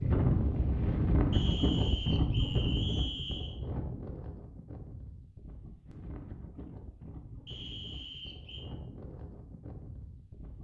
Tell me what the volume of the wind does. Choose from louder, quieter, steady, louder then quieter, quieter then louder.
quieter.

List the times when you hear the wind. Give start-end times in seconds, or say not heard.
0.0-10.5.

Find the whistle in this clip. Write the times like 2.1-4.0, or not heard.
1.3-3.5, 7.5-8.7.